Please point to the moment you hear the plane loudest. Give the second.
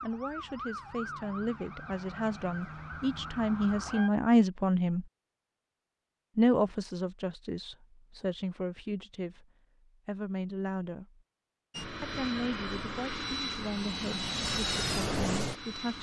15 s.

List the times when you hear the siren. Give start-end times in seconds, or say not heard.
0.0-4.1.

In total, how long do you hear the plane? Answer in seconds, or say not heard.
4 s.